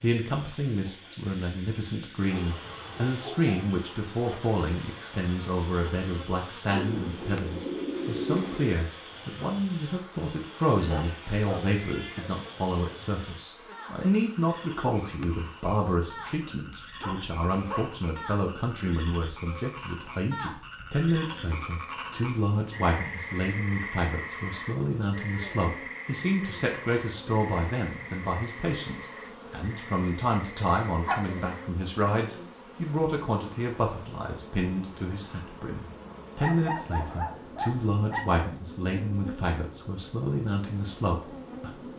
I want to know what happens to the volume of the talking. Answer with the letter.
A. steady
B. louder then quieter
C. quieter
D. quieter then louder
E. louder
A.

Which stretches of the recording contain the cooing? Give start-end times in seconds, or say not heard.
6.7-8.7.